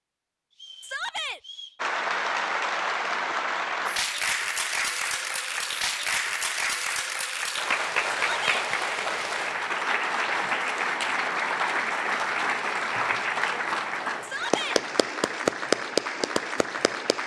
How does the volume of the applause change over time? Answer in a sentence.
The loudness of the applause stays about the same.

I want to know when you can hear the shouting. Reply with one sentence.
You can hear the shouting from 0.8 to 1.4 s, from 8.2 to 8.7 s and from 14.2 to 14.8 s.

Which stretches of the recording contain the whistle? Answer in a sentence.
The whistle can be heard from 0.5 to 1.9 s.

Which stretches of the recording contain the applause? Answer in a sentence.
You can hear the applause from 1.8 to 17.2 s.